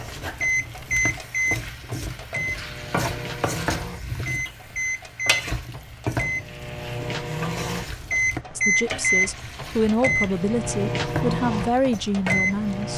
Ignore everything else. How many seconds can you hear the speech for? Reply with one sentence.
The speech can be heard for 4 seconds in total.